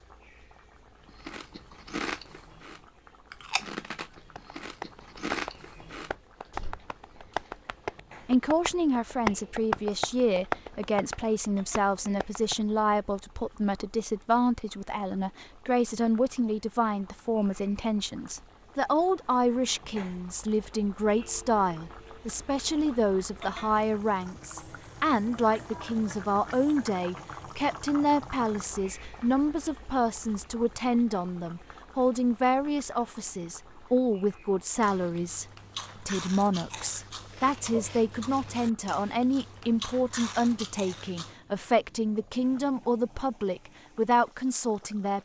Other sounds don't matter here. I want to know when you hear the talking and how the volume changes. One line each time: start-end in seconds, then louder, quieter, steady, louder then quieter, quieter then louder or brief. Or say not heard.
8.2-45.2 steady.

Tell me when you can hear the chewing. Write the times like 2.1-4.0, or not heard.
1.1-7.5, 34.8-41.4.